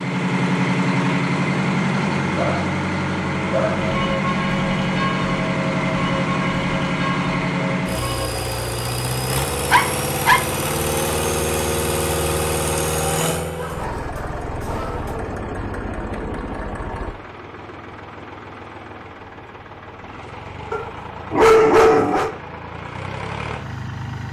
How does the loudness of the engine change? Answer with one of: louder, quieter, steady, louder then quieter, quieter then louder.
quieter.